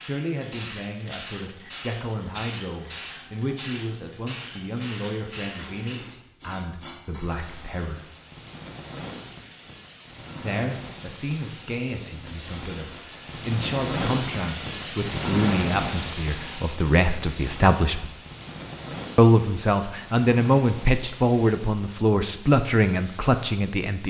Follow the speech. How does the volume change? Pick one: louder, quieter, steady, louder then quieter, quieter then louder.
louder.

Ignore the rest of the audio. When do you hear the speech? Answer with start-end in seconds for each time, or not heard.
0.0-8.1, 10.4-18.1, 19.1-24.0.